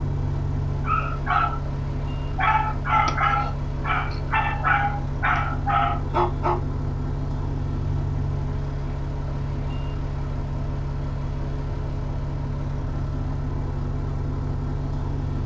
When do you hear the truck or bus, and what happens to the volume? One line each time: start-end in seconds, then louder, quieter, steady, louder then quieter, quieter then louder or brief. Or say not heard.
0.0-15.4 steady.